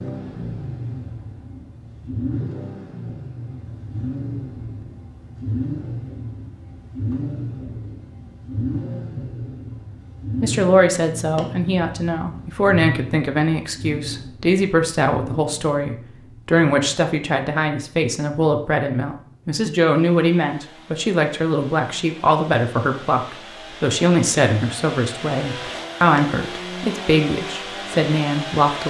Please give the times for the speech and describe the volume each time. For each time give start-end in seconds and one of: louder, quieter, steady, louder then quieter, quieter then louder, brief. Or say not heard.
10.4-28.8 steady.